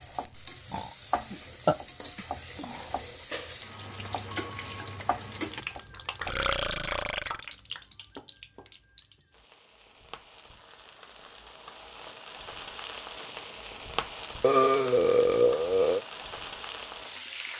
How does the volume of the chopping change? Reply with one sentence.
The volume of the chopping goes down, then up.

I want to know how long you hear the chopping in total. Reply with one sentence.
The chopping can be heard for 6 seconds in total.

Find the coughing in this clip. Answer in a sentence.
The coughing can't be heard in this clip.